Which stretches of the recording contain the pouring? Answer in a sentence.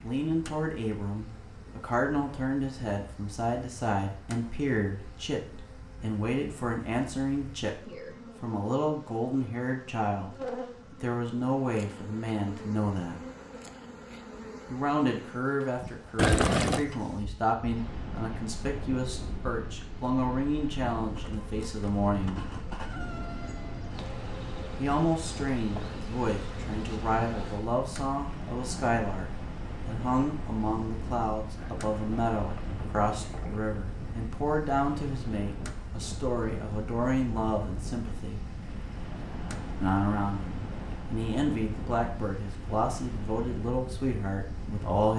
You can hear the pouring from 16.1 to 16.9 s and from 31.6 to 33.6 s.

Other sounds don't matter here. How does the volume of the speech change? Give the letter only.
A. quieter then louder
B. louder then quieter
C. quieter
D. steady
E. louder
D.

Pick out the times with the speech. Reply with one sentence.
You can hear the speech from 0.0 to 13.2 s, from 14.7 to 22.4 s, from 24.8 to 38.5 s and from 39.8 to 45.1 s.